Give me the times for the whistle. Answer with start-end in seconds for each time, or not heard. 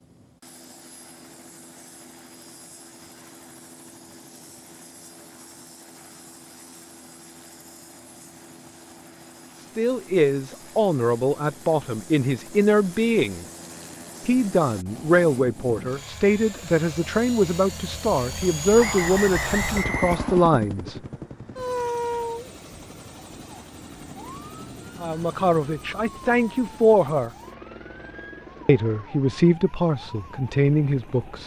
18.8-20.6.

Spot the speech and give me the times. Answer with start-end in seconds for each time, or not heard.
9.6-13.4, 14.2-20.9, 25.0-27.3, 28.6-31.4.